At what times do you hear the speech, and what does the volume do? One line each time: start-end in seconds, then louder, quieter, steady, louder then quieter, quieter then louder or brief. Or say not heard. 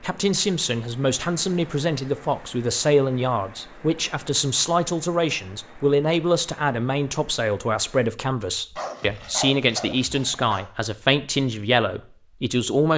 0.0-12.9 steady.